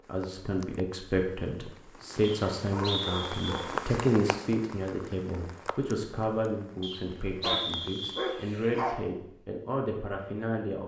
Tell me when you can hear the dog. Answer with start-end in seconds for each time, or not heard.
2.6-3.8, 7.4-8.9.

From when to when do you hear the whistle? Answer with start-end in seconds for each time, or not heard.
2.2-3.7, 6.8-8.3.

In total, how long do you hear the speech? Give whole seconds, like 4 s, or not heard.
11 s.